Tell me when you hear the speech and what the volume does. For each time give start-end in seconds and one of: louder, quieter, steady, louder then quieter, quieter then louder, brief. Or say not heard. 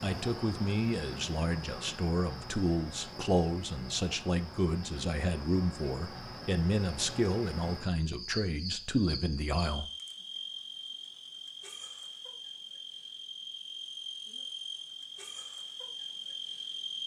0.0-9.8 steady.